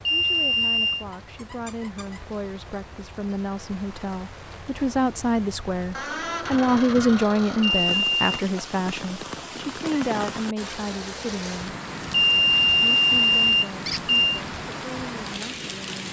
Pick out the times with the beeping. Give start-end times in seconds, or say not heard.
0.1-1.1, 7.6-8.2, 12.1-14.4.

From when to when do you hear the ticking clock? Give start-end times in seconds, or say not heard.
not heard.